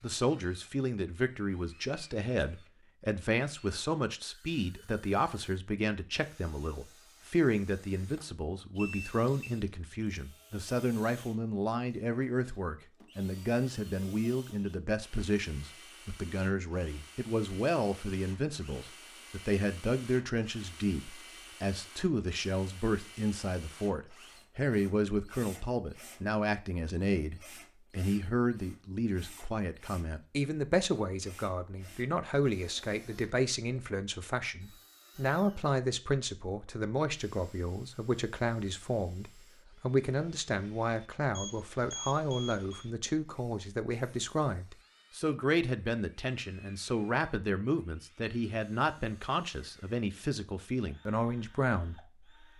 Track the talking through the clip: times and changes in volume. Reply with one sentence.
The talking can be heard from 0.0 to 52.5 s, at a steady volume.